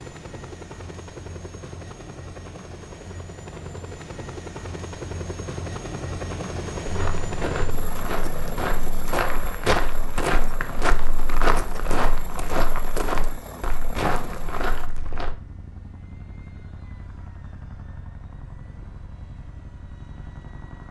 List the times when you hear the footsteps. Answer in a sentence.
You can hear the footsteps from 6.8 to 15.3 s.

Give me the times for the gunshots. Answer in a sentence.
The gunshots can't be heard in this clip.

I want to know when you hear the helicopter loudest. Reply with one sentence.
The loudest moment of the helicopter is at 7 seconds.